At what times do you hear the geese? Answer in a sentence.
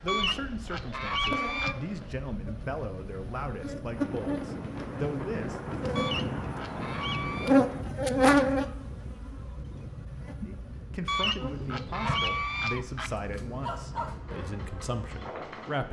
You can hear the geese from 0.1 to 1.8 s, from 6.0 to 7.5 s and from 11.1 to 13.1 s.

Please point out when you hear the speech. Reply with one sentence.
You can hear the speech from 0.0 to 5.5 s and from 10.4 to 15.8 s.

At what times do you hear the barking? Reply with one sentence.
You can hear the barking from 11.4 to 14.2 s.